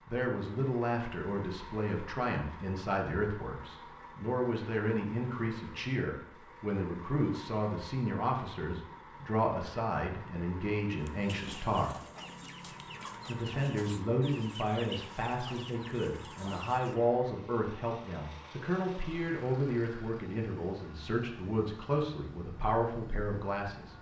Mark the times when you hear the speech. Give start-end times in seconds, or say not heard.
0.1-11.9, 13.2-23.9.